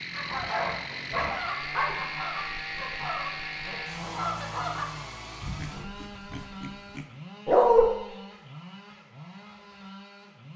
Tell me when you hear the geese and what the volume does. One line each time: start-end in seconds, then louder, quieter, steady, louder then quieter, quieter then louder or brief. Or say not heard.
0.1-5.0 steady.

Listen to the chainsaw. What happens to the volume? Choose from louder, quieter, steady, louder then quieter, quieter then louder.
quieter.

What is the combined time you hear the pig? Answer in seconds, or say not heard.
3 s.